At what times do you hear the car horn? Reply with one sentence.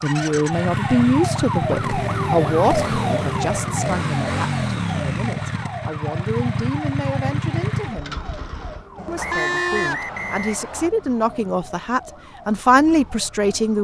The car horn can be heard from 8.9 to 10.4 s.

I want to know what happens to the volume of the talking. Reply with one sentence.
The volume of the talking goes down, then up.